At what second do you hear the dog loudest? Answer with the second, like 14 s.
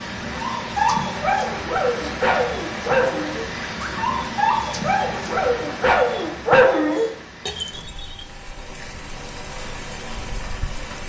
7 s.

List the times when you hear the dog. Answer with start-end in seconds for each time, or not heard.
0.2-8.2.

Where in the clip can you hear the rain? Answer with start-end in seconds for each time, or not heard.
0.0-11.0.